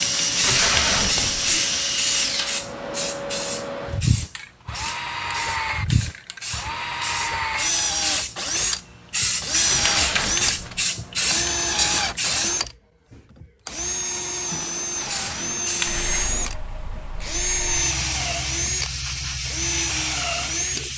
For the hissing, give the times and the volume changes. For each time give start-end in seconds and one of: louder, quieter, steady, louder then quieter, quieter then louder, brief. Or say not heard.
0.0-12.6 quieter then louder
15.1-20.9 quieter then louder.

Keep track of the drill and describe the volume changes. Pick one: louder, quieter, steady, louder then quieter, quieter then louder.
steady.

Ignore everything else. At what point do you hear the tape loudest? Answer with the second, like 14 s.
1 s.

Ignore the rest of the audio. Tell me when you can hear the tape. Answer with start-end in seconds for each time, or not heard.
0.4-1.6, 9.7-10.8, 14.9-15.6.